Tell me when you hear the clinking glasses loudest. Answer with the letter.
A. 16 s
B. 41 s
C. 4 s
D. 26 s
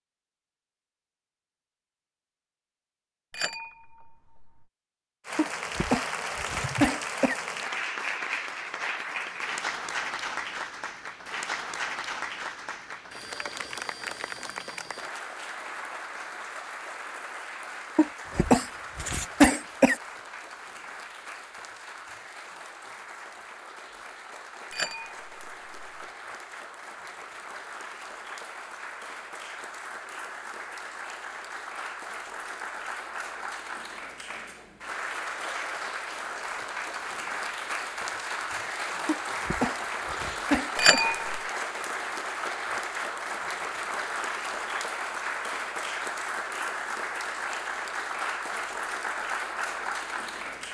B.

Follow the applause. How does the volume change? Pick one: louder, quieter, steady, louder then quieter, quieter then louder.
quieter then louder.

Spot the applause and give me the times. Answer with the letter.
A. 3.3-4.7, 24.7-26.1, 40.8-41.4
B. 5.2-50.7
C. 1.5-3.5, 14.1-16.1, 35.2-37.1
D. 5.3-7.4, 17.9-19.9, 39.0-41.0
B.